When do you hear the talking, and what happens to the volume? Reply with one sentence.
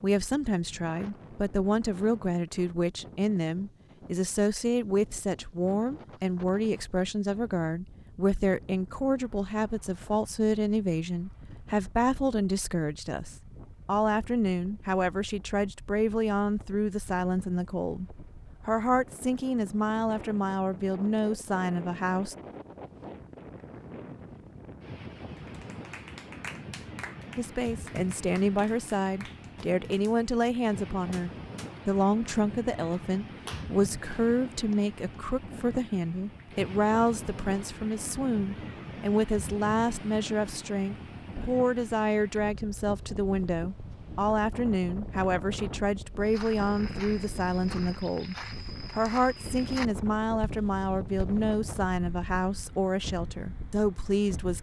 The talking can be heard from 0.0 to 22.4 s, at a steady volume; and from 27.4 to 54.5 s, at a steady volume.